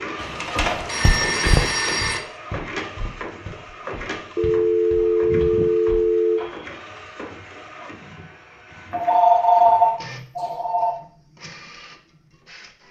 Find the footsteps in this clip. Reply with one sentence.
The footsteps can be heard from 0.6 to 6.8 s.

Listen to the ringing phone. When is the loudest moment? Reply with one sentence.
The volume of the ringing phone peaks at 10 seconds.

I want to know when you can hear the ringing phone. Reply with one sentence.
You can hear the ringing phone from 0.2 to 2.2 s, from 4.3 to 6.4 s and from 8.9 to 10.9 s.